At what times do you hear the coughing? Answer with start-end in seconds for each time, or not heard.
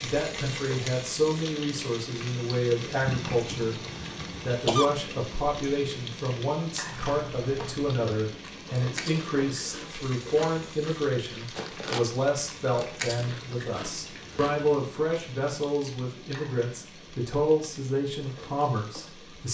3.0-4.9.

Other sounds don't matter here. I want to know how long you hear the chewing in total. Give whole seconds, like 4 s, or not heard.
8 s.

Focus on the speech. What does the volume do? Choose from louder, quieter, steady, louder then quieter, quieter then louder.
steady.